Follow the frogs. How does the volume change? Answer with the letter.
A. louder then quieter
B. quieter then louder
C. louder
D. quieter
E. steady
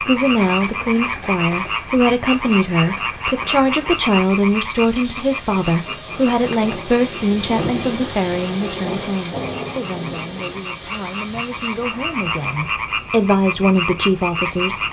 B.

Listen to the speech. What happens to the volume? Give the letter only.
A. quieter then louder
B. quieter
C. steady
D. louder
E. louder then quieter
A.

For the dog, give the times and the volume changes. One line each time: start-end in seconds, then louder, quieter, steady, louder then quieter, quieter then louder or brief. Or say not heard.
not heard.